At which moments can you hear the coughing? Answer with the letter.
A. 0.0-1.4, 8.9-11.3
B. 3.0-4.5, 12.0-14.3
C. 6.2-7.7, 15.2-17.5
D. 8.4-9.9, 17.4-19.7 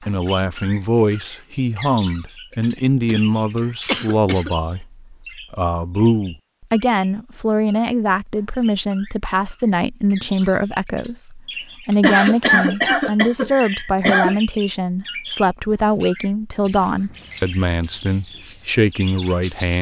B.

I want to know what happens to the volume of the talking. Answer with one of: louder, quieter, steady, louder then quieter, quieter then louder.
steady.